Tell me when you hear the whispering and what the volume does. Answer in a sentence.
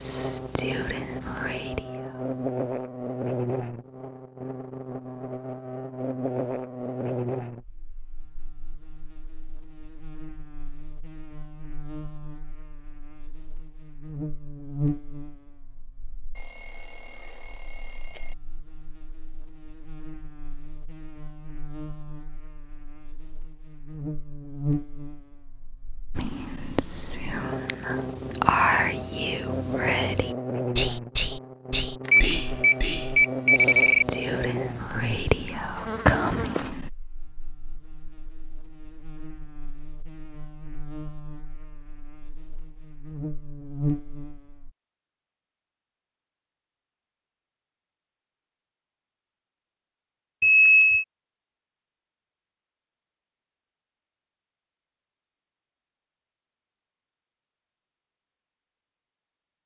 You can hear the whispering briefly from 0.0 to 2.5 s; and from 26.1 to 36.9 s, at a steady volume.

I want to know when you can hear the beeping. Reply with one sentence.
The beeping can be heard from 16.4 to 18.4 s, from 32.0 to 34.0 s and from 50.4 to 51.0 s.